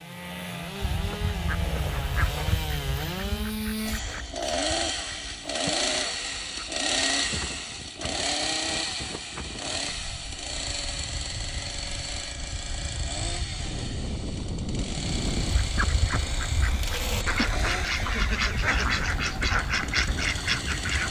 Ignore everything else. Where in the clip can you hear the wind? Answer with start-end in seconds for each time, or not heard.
7.2-21.0.